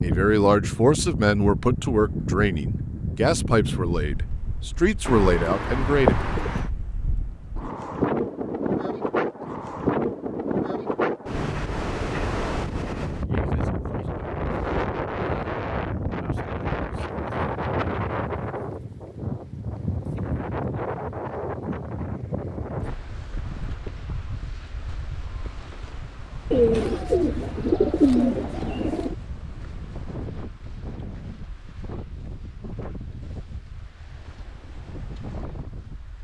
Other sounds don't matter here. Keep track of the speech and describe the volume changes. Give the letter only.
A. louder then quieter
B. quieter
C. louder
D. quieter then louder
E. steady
D.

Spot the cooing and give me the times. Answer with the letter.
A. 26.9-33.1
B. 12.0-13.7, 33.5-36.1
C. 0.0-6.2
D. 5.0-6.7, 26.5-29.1
D.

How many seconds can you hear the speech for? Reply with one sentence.
You can hear the speech for 6 seconds altogether.